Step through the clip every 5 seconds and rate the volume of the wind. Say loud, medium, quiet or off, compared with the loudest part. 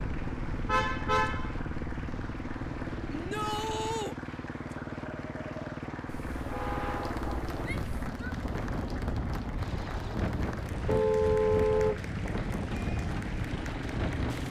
medium, loud, loud.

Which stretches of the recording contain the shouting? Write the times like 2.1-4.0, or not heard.
3.1-4.2, 7.6-8.3.